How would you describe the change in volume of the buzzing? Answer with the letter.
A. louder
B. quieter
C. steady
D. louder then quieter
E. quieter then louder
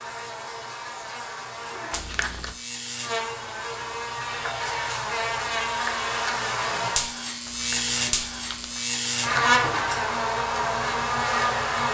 A.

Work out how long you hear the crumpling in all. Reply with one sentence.
You can hear the crumpling for 2 seconds altogether.